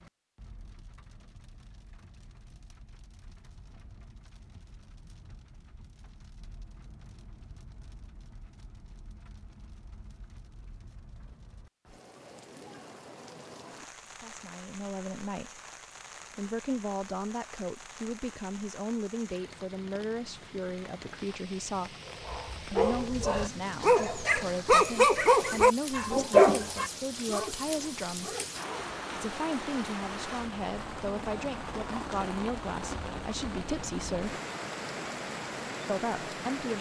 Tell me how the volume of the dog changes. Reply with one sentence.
The loudness of the dog goes up, then down.